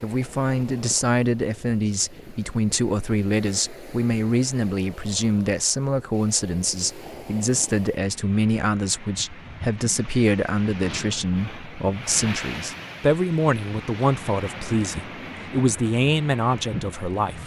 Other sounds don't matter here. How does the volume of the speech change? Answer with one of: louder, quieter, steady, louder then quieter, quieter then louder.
steady.